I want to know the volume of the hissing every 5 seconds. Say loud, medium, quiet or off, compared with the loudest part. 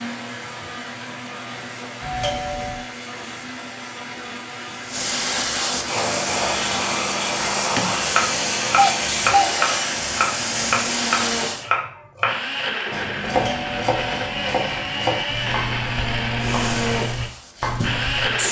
quiet, loud, loud, medium.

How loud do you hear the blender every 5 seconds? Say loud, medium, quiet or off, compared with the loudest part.
medium, medium, loud, loud.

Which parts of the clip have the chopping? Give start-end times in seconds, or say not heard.
7.8-18.4.